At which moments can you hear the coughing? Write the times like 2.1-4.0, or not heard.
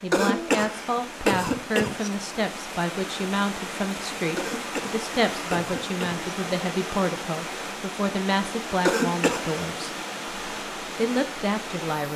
0.1-2.1, 4.3-6.3, 8.8-9.6.